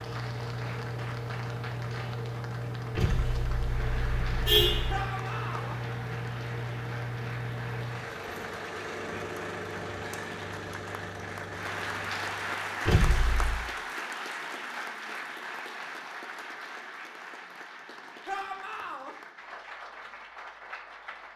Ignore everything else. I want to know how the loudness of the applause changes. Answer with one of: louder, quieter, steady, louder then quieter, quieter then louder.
louder then quieter.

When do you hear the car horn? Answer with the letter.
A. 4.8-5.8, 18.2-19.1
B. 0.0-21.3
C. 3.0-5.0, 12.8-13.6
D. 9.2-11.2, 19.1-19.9
C.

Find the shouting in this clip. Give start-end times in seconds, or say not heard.
4.8-5.8, 18.2-19.1.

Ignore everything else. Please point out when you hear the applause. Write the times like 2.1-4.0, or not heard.
0.0-21.3.